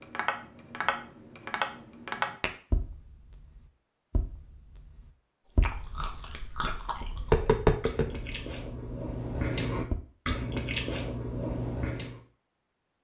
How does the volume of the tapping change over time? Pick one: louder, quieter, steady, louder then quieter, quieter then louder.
quieter then louder.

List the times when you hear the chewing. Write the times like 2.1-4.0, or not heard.
5.6-12.2.